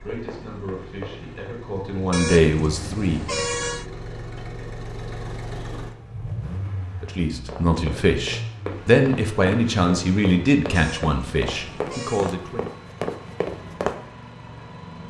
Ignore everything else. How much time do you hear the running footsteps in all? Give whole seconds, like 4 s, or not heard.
8 s.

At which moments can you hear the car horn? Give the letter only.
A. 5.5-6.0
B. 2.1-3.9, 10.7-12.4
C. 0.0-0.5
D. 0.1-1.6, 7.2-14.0
B.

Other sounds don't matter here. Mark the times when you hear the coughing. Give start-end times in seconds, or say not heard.
5.5-6.0.